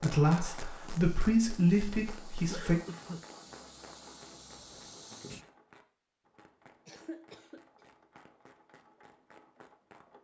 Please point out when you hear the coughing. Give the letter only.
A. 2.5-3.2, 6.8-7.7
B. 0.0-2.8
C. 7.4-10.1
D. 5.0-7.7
A.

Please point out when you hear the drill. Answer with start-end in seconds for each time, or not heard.
not heard.